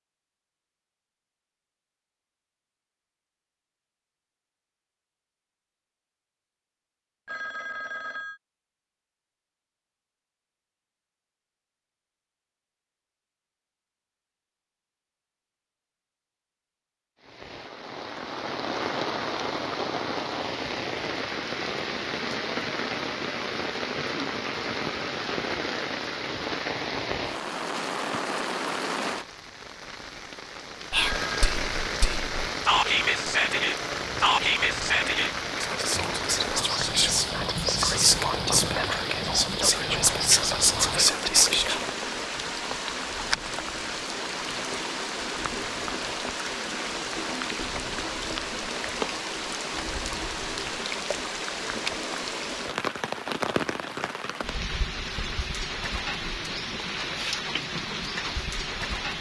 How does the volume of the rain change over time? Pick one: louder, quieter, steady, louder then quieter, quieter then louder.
steady.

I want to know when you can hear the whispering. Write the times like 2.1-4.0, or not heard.
30.9-42.0.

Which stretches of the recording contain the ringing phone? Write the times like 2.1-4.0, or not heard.
7.2-8.4, 30.9-31.4.